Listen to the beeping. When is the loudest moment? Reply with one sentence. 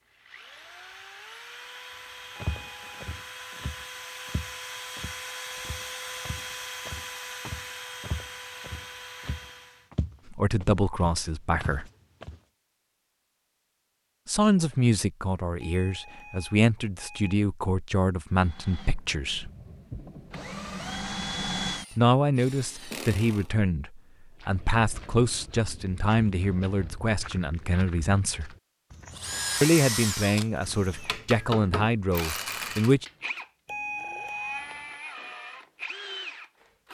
The volume of the beeping peaks at 34 seconds.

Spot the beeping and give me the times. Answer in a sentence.
The beeping can be heard from 2.4 to 3.0 s, from 15.6 to 17.4 s and from 33.6 to 34.9 s.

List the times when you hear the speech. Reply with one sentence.
You can hear the speech from 10.3 to 11.8 s, from 14.2 to 19.5 s, from 21.9 to 28.5 s and from 29.6 to 33.0 s.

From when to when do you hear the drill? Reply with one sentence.
You can hear the drill from 0.1 to 9.9 s, from 18.3 to 23.5 s and from 29.1 to 36.8 s.